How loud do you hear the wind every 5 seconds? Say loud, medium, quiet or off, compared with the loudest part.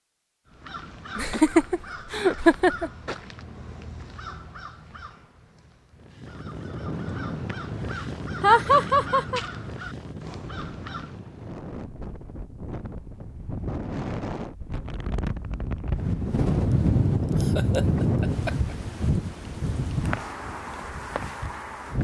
off, medium, medium, loud, medium.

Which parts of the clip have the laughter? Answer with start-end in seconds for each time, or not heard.
1.1-2.9, 8.4-9.4, 17.4-18.8.